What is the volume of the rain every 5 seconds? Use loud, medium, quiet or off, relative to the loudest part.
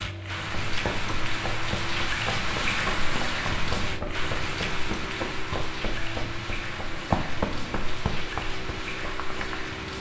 loud, medium.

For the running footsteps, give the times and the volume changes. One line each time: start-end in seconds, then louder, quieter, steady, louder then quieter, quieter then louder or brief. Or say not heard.
0.7-9.7 louder then quieter.